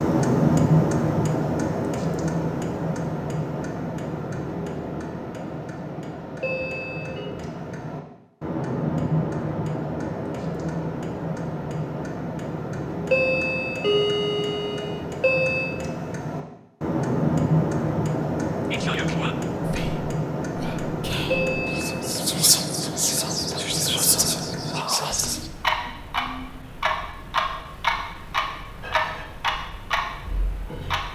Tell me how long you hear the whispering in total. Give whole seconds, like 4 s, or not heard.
7 s.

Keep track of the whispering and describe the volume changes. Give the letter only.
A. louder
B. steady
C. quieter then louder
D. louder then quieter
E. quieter
A.